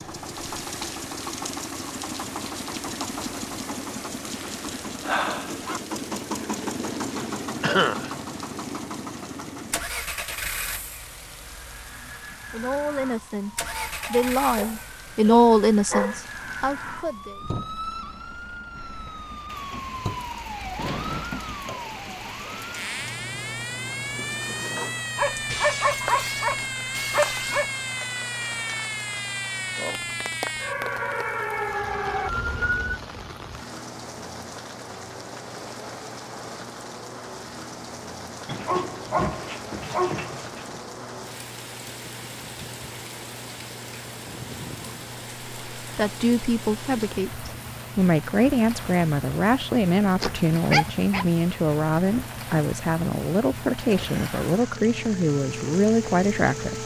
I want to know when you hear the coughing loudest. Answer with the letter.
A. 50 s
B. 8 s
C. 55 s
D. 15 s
B.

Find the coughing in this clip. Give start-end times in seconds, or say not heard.
7.6-8.1, 53.9-54.8.